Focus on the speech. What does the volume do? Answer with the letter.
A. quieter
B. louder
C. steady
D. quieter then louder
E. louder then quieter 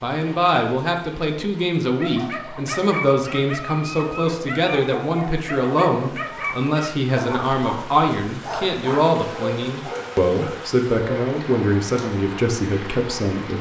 C.